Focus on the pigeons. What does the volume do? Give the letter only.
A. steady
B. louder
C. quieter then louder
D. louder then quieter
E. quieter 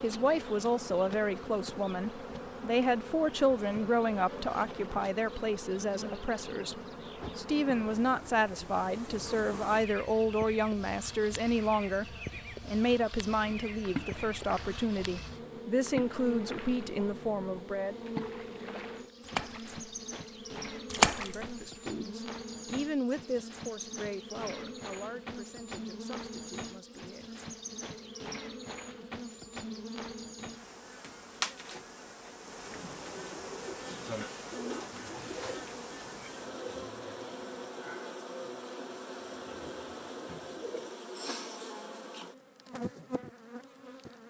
E.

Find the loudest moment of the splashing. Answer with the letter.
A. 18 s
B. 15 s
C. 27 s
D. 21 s
D.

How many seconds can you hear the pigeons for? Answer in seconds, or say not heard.
8 s.